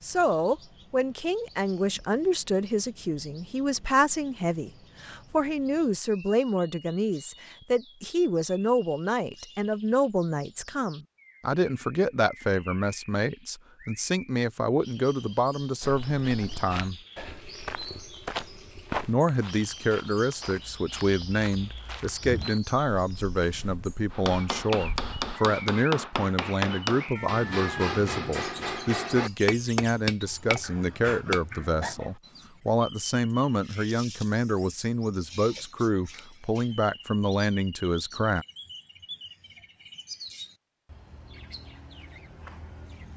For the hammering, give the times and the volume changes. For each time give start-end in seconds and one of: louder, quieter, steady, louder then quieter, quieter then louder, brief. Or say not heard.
24.1-31.9 steady.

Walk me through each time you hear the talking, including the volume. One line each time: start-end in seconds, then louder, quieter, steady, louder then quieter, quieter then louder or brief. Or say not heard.
0.0-17.0 steady
19.1-38.5 steady.